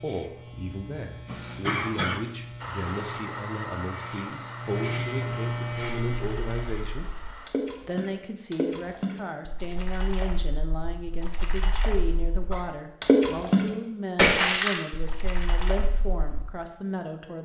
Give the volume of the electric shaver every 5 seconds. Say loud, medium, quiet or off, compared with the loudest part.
medium, loud, off, off.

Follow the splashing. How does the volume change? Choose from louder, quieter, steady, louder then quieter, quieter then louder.
quieter then louder.